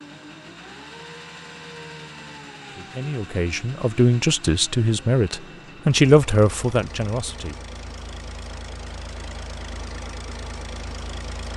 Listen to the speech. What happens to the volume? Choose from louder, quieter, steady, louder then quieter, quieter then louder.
louder then quieter.